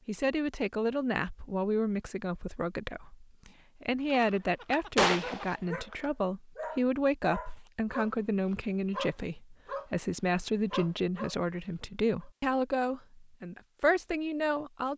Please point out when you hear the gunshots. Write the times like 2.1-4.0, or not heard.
4.1-6.0.